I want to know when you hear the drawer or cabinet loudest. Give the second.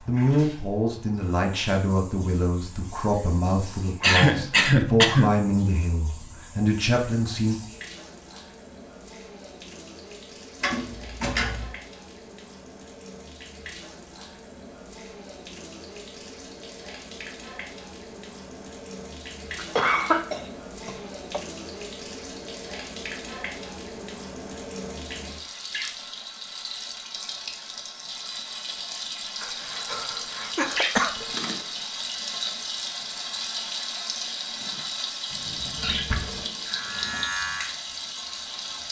11 s.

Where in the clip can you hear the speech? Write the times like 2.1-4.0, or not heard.
0.1-7.5.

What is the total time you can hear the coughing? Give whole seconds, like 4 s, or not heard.
5 s.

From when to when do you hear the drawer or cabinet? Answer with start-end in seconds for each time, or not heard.
10.6-11.8, 35.3-36.5.